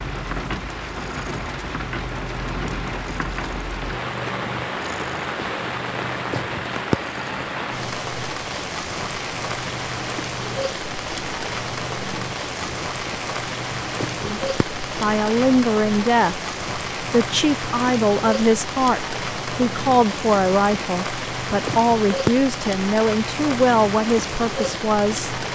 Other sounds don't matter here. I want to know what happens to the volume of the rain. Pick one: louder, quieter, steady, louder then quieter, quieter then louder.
steady.